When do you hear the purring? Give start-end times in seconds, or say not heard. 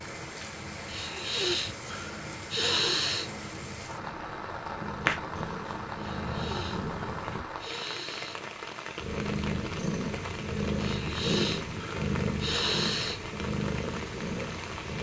0.0-7.4, 9.0-14.9.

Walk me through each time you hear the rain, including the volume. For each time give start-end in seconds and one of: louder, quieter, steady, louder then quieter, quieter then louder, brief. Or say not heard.
0.0-14.9 steady.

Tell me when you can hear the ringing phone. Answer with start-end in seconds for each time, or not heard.
not heard.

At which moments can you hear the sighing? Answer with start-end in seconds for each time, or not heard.
0.8-3.3, 6.0-8.4, 10.8-13.2.